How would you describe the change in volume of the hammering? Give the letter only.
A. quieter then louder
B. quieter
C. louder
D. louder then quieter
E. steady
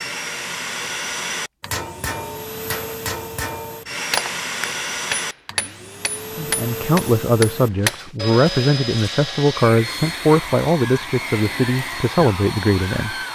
E.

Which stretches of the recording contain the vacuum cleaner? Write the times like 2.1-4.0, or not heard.
0.0-13.3.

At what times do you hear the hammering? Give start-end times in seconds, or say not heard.
1.6-8.1.